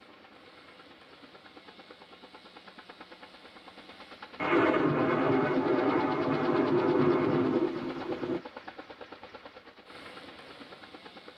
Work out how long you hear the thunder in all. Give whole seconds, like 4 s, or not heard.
4 s.